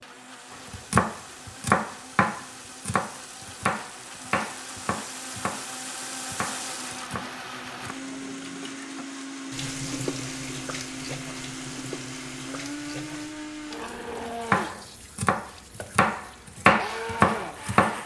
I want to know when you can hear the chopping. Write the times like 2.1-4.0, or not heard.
0.7-8.0, 14.5-18.0.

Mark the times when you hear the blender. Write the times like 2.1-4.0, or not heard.
0.0-18.0.